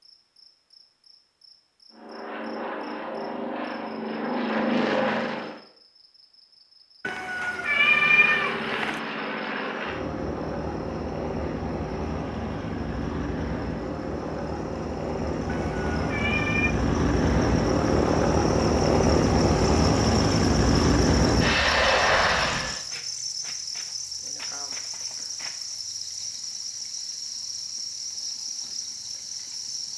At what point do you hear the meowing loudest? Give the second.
8 s.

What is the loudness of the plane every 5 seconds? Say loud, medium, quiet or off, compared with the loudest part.
medium, medium, medium, loud, loud, off.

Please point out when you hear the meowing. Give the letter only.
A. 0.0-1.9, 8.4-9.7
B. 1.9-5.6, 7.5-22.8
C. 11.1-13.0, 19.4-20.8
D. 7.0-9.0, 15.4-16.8
D.